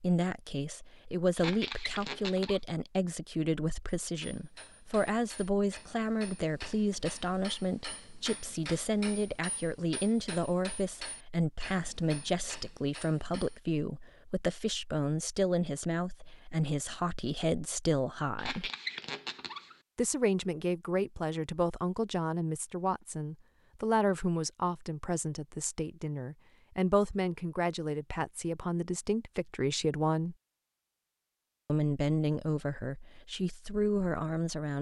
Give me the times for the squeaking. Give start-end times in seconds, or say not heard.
1.4-2.6, 18.4-19.8.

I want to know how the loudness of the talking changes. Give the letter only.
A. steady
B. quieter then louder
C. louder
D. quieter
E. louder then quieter
A.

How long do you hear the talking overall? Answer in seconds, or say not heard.
32 s.